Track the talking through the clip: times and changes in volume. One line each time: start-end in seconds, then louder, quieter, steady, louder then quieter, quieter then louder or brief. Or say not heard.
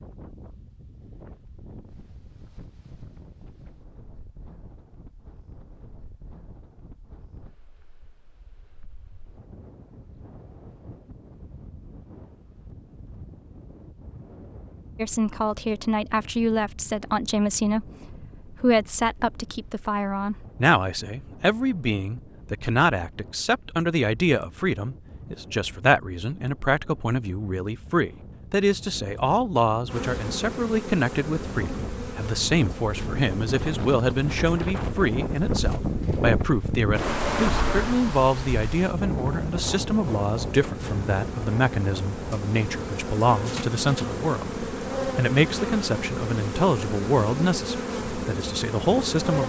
14.9-49.4 steady.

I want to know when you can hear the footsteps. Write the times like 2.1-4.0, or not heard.
not heard.